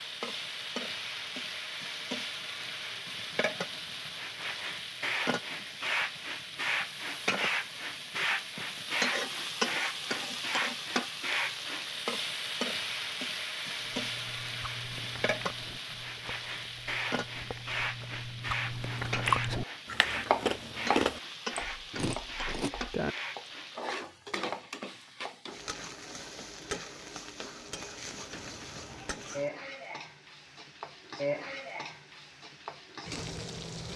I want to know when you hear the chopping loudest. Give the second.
20 s.